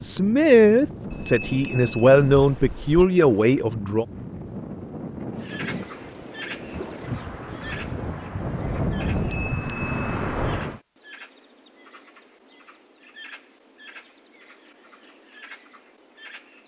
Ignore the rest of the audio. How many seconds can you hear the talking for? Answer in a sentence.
The talking can be heard for 4 seconds in total.